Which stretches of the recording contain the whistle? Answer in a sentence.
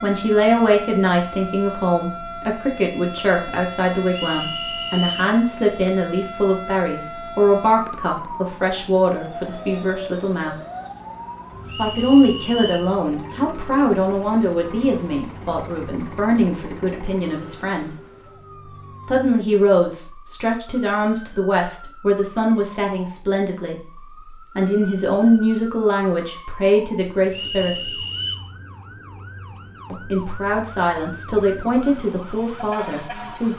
The whistle can be heard from 4.1 to 5.3 s, from 11.7 to 12.9 s and from 27.3 to 28.4 s.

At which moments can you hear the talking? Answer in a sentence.
The talking can be heard from 0.0 to 10.6 s, from 11.8 to 17.9 s, from 19.1 to 23.8 s, from 24.6 to 27.9 s and from 29.9 to 33.5 s.